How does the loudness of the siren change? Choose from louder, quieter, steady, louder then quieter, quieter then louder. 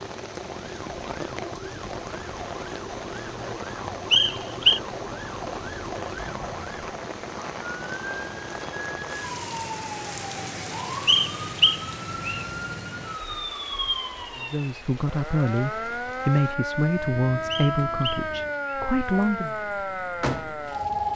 louder.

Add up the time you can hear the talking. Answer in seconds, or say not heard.
5 s.